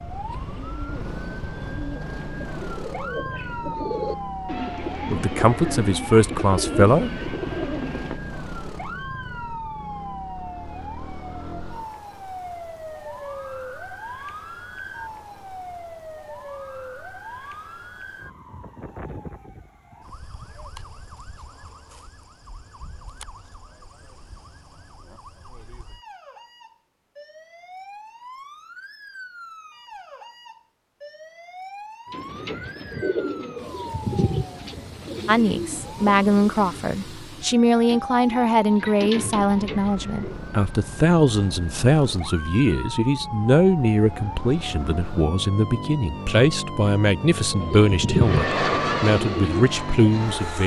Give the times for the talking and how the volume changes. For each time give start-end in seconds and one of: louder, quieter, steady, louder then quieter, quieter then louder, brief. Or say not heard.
5.1-7.2 brief
35.2-50.6 steady.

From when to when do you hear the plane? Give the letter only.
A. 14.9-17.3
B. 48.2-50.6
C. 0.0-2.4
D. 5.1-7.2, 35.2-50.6
B.